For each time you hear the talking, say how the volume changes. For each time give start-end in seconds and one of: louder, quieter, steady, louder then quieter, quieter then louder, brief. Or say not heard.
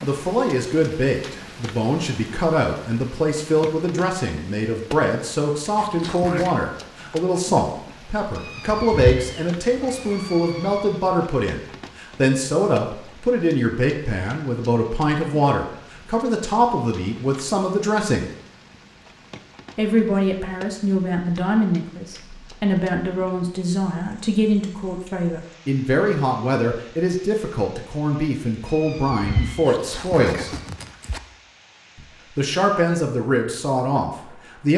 0.0-18.3 steady
19.8-30.5 steady
31.9-34.7 brief.